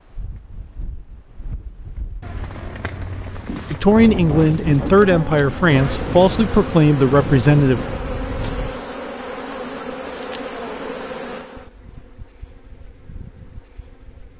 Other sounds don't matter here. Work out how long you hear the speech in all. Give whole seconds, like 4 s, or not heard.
4 s.